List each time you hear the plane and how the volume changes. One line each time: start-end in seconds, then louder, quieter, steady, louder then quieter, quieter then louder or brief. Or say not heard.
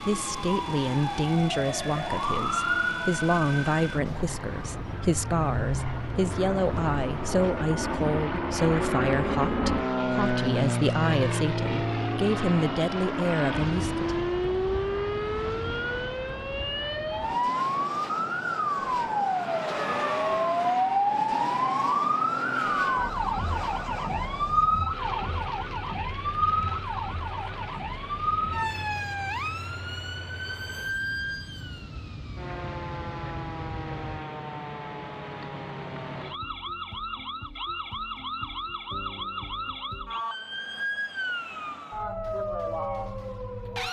0.0-34.2 louder then quieter.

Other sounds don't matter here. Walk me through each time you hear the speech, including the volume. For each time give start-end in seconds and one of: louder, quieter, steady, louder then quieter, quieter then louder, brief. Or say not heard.
0.0-14.2 steady.